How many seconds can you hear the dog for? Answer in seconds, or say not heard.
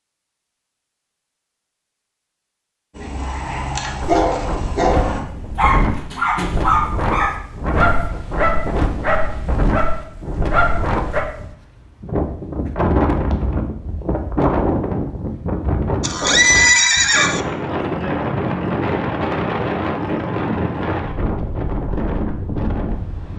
8 s.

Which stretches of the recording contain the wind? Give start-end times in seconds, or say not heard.
4.0-23.3.